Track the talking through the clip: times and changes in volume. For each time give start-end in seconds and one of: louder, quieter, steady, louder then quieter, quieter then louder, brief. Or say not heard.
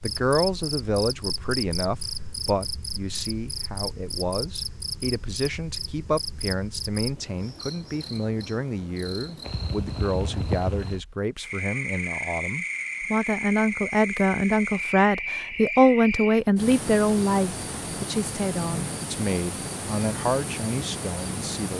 0.0-21.7 louder then quieter.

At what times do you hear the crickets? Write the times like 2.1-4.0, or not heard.
0.0-21.7.